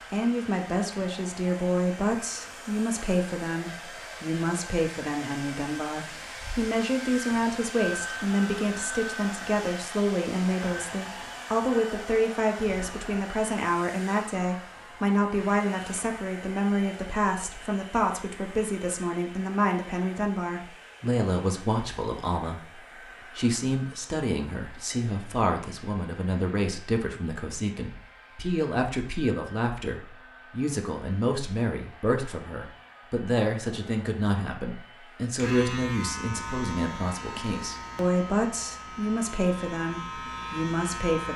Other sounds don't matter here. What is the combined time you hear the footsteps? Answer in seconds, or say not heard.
not heard.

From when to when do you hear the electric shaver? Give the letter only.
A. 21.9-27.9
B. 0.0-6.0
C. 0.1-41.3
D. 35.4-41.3
D.